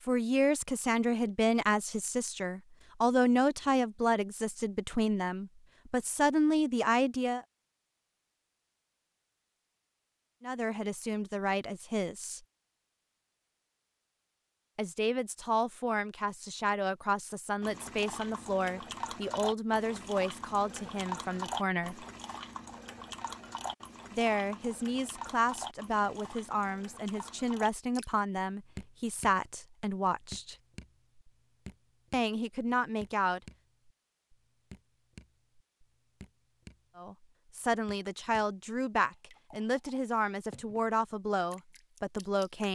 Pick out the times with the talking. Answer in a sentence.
You can hear the talking from 0.1 to 7.4 s, from 10.4 to 12.4 s, from 14.8 to 22.1 s, from 24.1 to 30.6 s, from 32.1 to 33.4 s and from 37.0 to 42.7 s.